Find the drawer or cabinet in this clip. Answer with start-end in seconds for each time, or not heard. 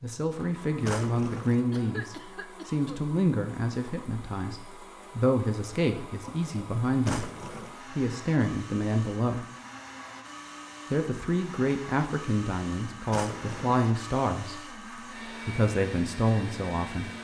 0.8-1.6, 7.0-7.8, 13.1-13.8.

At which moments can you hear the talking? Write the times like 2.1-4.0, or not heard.
0.0-9.4, 10.9-17.1.